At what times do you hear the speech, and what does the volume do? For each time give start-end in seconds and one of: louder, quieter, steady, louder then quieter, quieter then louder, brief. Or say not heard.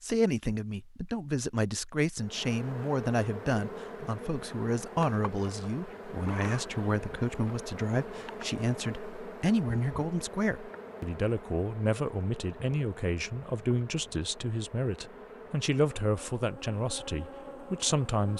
0.0-18.3 steady.